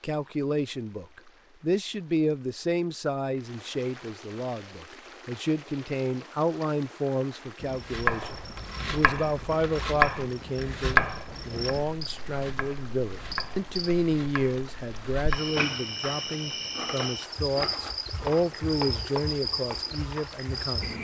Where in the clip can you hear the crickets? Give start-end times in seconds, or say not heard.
7.5-20.9.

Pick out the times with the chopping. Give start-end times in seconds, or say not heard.
7.8-19.9.